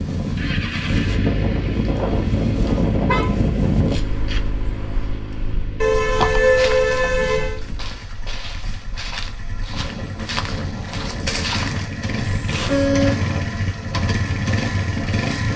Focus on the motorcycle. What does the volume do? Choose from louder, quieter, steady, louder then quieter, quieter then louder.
quieter then louder.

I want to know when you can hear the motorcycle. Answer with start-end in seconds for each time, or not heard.
0.2-15.5.